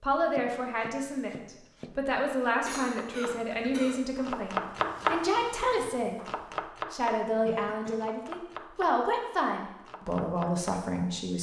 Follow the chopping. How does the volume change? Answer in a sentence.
The volume of the chopping goes up, then down.